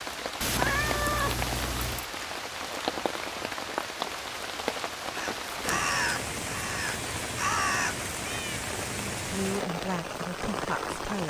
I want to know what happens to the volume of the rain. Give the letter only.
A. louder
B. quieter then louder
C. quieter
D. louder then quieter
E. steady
E.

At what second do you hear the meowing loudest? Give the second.
1 s.